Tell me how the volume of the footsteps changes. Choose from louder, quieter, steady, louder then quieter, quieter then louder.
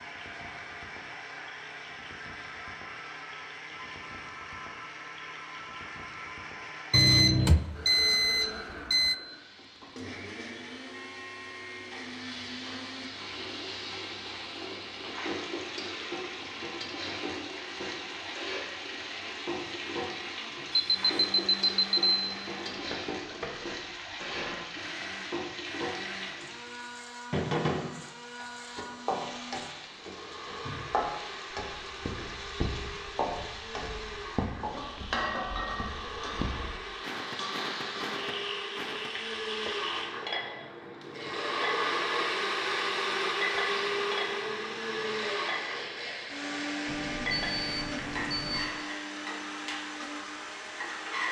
quieter then louder.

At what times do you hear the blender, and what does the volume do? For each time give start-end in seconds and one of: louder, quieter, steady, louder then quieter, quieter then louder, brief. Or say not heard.
0.0-51.2 louder.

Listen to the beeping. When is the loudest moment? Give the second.
7 s.